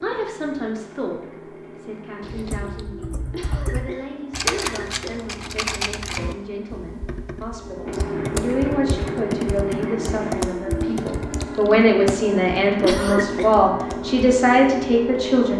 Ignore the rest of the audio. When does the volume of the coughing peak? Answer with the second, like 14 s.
13 s.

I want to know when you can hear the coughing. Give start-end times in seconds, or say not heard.
3.3-5.2, 12.8-13.5.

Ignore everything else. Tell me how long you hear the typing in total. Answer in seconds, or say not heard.
12 s.